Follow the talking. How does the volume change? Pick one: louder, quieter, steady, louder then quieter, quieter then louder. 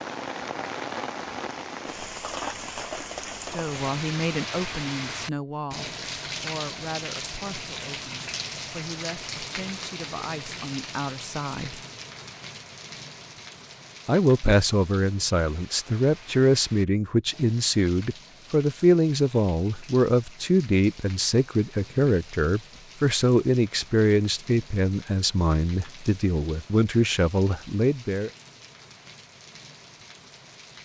louder.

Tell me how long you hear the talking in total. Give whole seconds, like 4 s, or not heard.
23 s.